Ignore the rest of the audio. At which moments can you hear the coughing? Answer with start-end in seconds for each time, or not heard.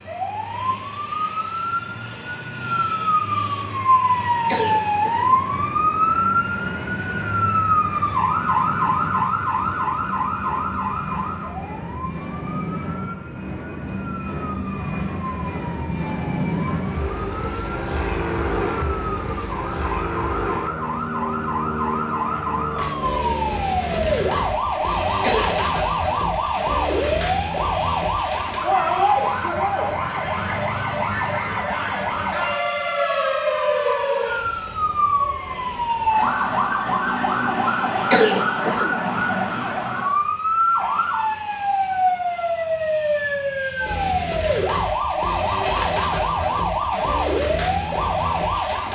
4.5-5.5, 25.2-25.6, 38.1-39.0.